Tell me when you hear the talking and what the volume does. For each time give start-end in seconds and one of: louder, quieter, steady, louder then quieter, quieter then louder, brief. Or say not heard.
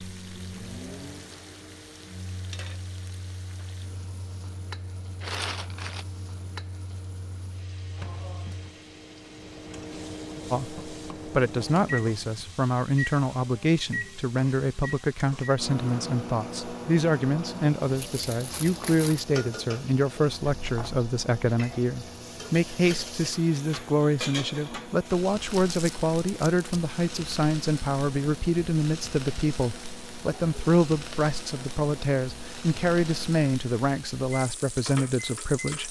10.5-35.8 steady.